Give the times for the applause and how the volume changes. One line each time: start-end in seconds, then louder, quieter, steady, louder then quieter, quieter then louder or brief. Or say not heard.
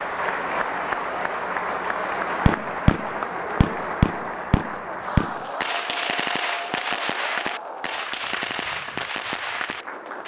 0.0-10.2 quieter.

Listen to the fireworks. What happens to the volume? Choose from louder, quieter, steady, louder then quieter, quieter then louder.
quieter.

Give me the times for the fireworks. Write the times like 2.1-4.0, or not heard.
2.5-10.2.